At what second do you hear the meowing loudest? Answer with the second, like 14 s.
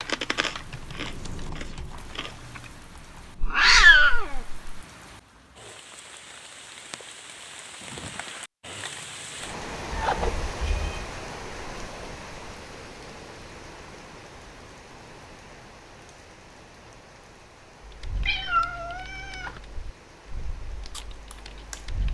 4 s.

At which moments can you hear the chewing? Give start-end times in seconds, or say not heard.
0.0-2.7, 20.9-21.9.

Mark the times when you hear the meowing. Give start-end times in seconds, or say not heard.
3.4-4.6, 9.9-11.0, 18.2-19.6.